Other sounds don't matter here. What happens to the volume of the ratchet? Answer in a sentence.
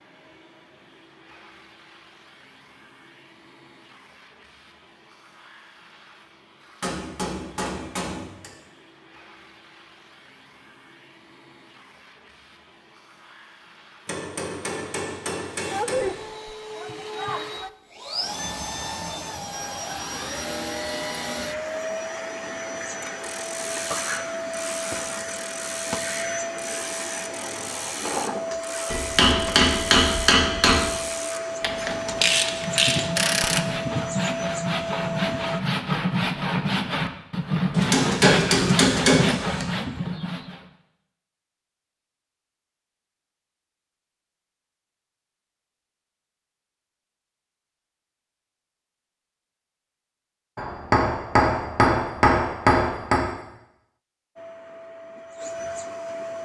The volume of the ratchet goes up.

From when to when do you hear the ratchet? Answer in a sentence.
You can hear the ratchet from 23.0 to 33.7 s.